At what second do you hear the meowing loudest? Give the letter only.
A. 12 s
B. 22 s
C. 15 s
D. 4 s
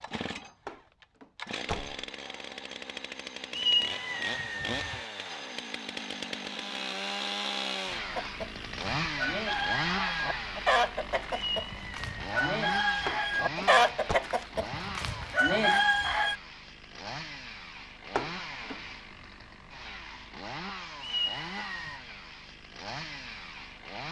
D.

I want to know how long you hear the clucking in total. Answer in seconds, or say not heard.
8 s.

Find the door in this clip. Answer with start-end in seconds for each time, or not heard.
0.7-2.0, 13.1-14.2, 18.1-18.8.